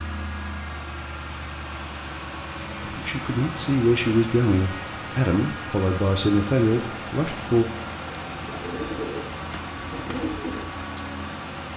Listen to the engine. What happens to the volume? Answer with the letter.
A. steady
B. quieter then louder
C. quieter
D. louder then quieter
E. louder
A.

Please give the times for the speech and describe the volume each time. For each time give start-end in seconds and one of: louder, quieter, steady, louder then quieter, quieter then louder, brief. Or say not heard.
2.8-7.7 steady.